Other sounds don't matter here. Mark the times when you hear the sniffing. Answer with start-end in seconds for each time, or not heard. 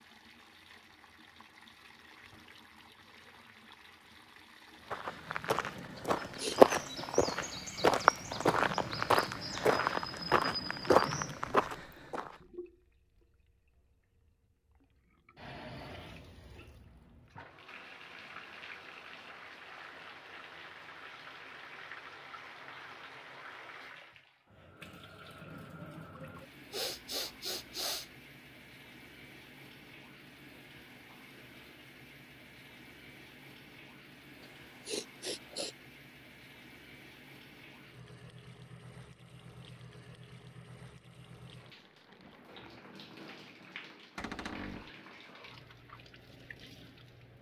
6.0-6.6, 26.7-28.1, 34.4-35.8.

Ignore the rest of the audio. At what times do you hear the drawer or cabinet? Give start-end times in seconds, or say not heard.
44.1-44.9.